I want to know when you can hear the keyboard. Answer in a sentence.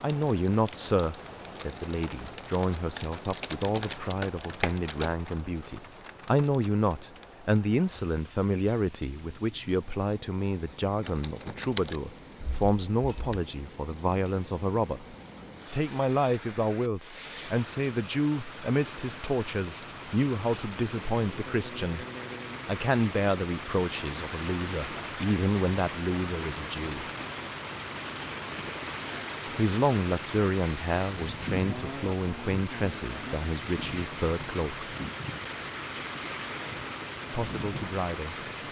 You can hear the keyboard from 0.0 to 5.1 s and from 11.0 to 13.4 s.